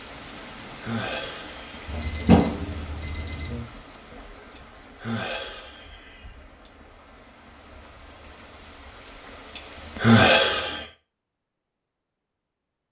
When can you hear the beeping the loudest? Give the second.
2 s.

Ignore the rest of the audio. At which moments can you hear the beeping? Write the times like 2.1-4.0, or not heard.
1.9-3.6, 9.8-10.8.